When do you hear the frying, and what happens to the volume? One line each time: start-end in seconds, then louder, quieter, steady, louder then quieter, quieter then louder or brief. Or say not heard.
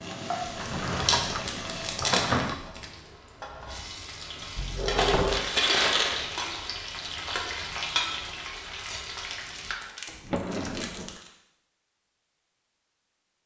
0.0-9.8 quieter then louder.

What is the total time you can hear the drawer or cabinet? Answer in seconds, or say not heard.
4 s.